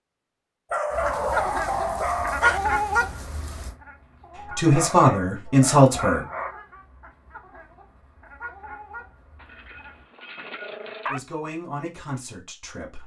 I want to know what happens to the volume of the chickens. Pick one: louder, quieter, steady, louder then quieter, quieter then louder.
quieter.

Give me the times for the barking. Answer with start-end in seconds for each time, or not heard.
0.7-2.6, 4.7-6.5, 9.4-11.2.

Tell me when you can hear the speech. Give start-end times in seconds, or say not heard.
4.5-6.2, 11.1-13.0.